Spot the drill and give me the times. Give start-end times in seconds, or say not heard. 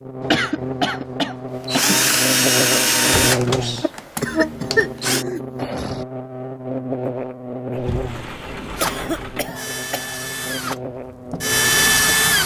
1.6-5.2, 8.8-12.4.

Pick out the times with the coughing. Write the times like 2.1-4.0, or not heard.
0.2-2.0, 4.2-6.0, 8.8-10.2.